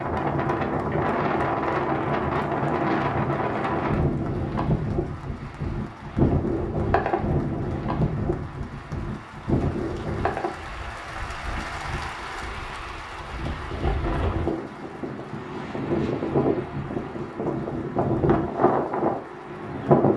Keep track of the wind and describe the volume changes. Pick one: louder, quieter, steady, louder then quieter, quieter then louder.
quieter then louder.